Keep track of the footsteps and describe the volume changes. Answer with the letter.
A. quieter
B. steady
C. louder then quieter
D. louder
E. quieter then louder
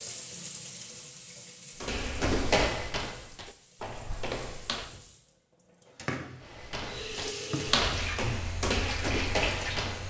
E.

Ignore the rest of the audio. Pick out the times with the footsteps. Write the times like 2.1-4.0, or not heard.
1.8-5.0, 6.4-10.0.